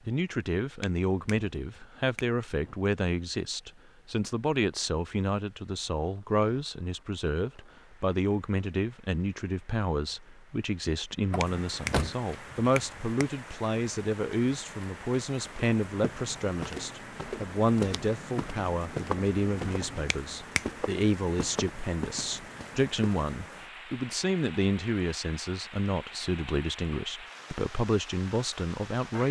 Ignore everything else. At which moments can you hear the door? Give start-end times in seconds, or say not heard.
11.3-12.2.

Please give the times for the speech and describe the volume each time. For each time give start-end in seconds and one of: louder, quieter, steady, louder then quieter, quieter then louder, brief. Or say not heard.
0.1-29.2 steady.